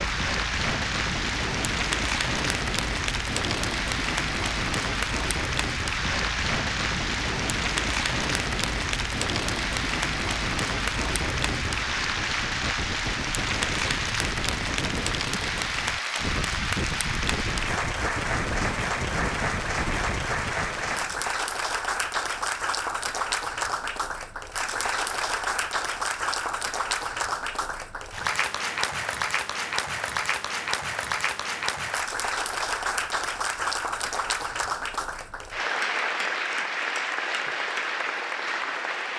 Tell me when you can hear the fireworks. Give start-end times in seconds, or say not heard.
not heard.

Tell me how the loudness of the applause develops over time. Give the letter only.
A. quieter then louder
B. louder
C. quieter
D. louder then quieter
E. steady
E.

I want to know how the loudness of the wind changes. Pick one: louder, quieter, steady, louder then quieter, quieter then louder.
steady.